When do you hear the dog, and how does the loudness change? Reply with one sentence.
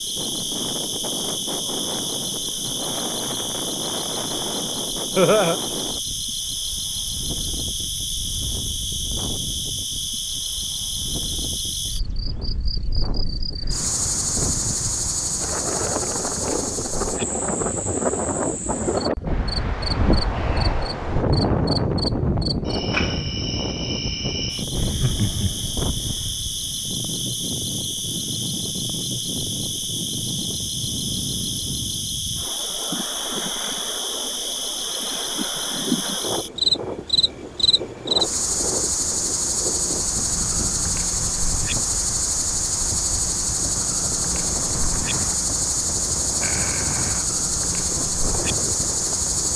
The dog can't be heard in this clip.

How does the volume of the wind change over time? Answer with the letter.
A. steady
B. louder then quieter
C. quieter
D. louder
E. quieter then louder
B.